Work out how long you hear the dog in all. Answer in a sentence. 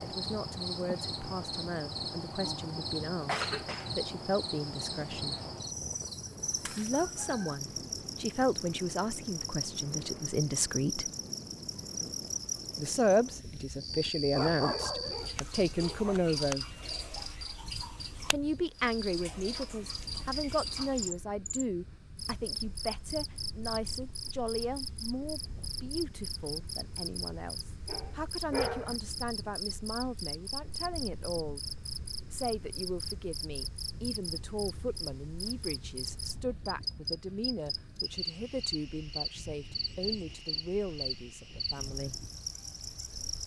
You can hear the dog for 3 seconds altogether.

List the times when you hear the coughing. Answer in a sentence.
You can hear the coughing from 3.2 to 3.9 s.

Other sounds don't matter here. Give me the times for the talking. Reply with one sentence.
The talking can be heard from 0.0 to 5.3 s, from 6.7 to 11.1 s, from 12.8 to 16.7 s, from 18.2 to 31.6 s and from 32.3 to 42.2 s.